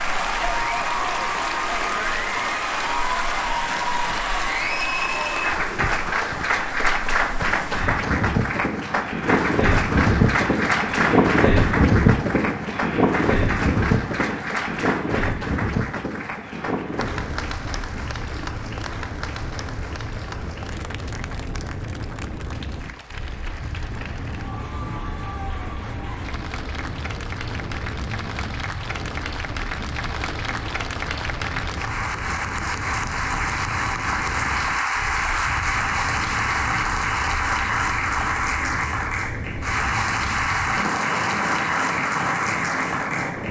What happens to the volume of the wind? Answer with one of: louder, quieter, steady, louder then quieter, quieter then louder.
louder then quieter.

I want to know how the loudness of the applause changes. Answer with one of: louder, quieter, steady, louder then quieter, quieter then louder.
quieter then louder.